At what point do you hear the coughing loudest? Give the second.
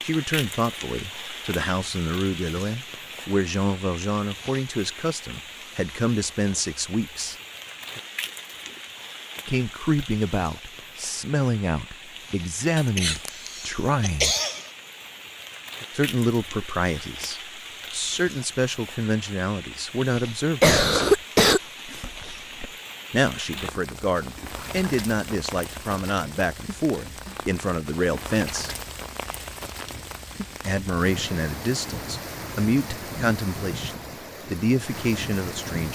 21 s.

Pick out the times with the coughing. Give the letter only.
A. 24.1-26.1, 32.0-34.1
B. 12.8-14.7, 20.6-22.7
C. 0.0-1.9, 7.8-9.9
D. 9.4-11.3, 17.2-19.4
B.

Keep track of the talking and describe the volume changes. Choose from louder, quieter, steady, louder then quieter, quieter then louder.
steady.